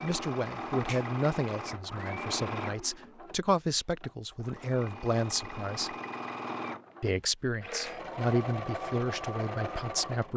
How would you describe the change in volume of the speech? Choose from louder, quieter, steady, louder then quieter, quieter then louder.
steady.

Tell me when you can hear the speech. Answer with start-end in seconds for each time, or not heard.
0.0-6.0, 7.0-10.3.